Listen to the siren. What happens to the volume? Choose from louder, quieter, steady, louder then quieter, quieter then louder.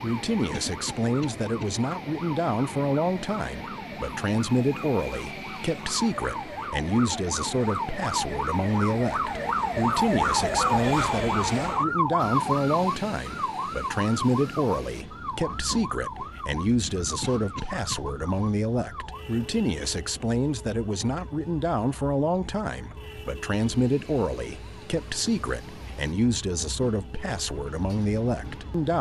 louder then quieter.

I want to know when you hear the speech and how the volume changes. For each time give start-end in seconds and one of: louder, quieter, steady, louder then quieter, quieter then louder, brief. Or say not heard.
0.0-28.9 steady.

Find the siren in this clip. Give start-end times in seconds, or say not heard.
0.0-28.9.